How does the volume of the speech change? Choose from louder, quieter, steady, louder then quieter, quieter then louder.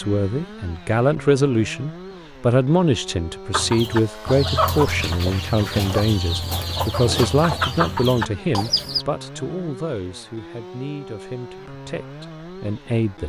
quieter.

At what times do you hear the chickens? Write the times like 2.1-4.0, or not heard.
3.5-9.1.